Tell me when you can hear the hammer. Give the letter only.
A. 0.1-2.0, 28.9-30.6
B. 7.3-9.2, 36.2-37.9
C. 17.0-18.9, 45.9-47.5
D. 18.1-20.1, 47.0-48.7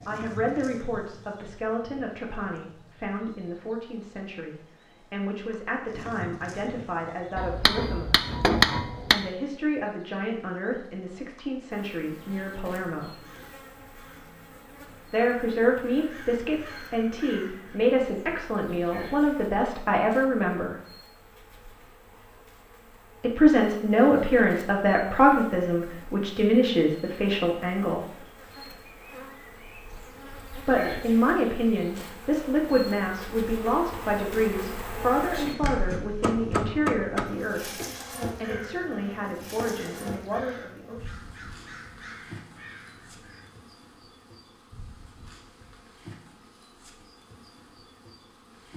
B.